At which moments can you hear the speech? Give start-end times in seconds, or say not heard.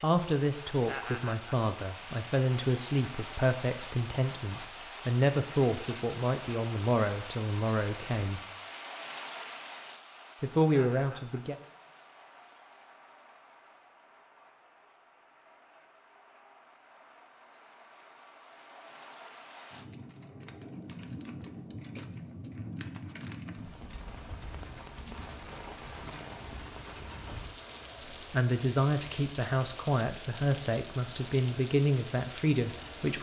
0.0-8.4, 10.4-11.6, 28.3-33.1.